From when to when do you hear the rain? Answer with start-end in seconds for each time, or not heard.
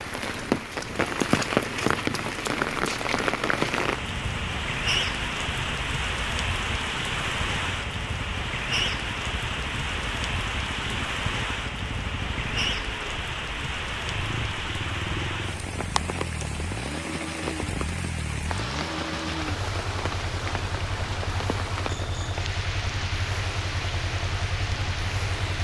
0.0-25.5.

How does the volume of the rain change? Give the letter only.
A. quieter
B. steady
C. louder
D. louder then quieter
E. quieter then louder
A.